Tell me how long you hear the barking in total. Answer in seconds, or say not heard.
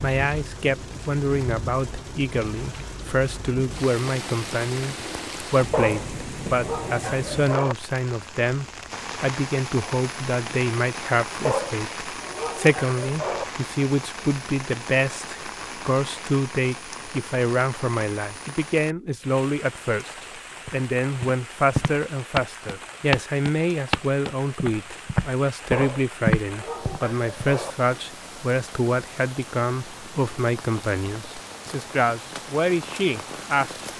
6 s.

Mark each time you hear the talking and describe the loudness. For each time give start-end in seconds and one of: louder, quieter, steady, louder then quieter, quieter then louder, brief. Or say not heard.
0.0-33.9 steady.